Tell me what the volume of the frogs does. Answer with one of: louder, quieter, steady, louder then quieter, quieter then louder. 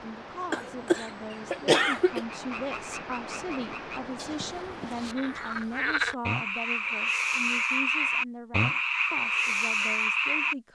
louder.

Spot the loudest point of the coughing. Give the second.
2 s.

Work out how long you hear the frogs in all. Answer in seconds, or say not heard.
8 s.